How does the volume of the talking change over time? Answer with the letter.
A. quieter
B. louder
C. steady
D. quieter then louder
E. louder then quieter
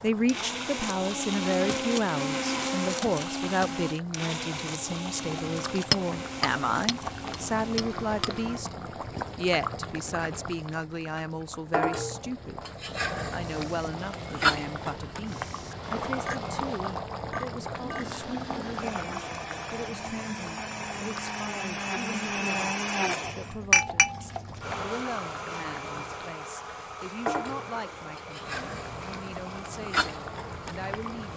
A.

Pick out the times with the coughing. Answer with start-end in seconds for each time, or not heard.
not heard.